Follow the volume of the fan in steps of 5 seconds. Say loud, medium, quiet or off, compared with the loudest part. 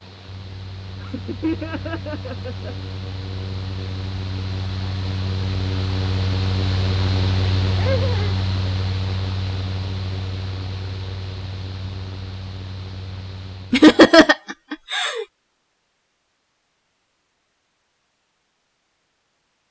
medium, loud, medium, off.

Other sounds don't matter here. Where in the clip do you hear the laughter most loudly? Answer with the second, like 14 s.
14 s.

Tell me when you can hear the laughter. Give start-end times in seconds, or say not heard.
1.0-2.8, 7.8-8.3, 13.7-15.2.